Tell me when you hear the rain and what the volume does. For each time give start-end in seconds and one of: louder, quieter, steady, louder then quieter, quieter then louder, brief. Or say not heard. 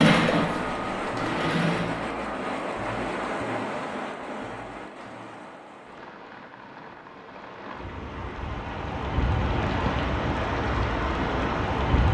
0.2-12.0 quieter then louder.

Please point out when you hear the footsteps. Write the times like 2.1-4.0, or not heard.
not heard.